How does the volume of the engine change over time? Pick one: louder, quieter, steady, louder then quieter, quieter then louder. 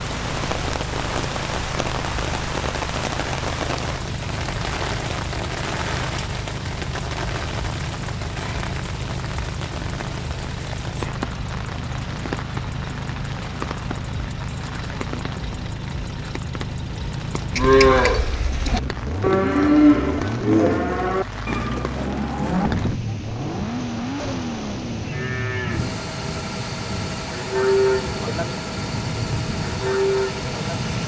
steady.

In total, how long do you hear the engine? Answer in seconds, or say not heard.
31 s.